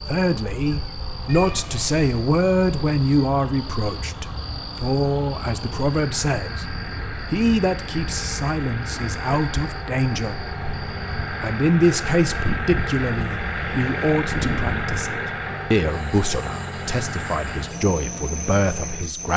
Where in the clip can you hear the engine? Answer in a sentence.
You can hear the engine from 0.0 to 19.3 s.